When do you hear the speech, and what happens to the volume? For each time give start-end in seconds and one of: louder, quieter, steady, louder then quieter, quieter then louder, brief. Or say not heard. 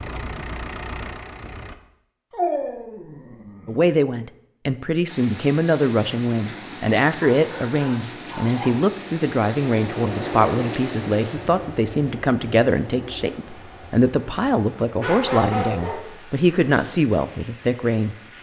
3.6-18.1 steady.